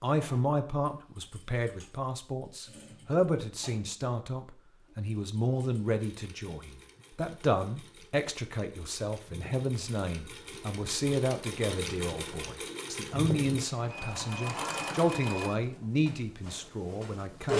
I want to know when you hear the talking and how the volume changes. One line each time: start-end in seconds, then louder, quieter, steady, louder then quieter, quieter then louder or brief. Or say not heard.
0.0-17.5 steady.